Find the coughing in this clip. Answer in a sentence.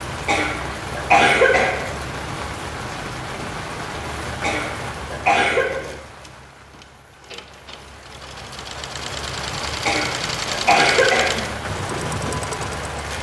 You can hear the coughing from 0.2 to 1.8 s, from 4.4 to 5.8 s and from 9.8 to 11.5 s.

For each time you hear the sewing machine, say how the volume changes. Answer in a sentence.
The sewing machine can be heard from 0.0 to 13.1 s, getting louder.